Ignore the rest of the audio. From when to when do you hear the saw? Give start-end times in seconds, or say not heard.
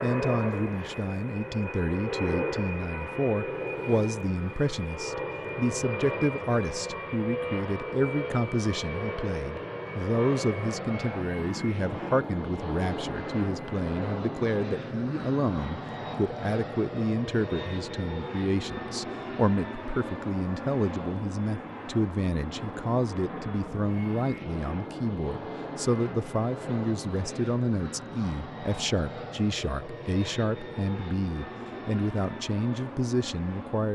not heard.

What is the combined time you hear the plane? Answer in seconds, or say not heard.
34 s.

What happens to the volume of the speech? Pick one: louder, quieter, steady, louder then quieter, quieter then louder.
steady.